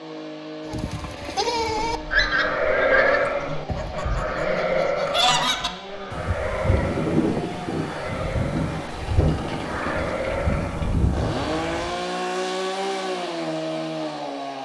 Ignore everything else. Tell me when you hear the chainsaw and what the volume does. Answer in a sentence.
The chainsaw can be heard from 0.0 to 14.6 s, getting louder.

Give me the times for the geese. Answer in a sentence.
You can hear the geese from 1.9 to 11.9 s.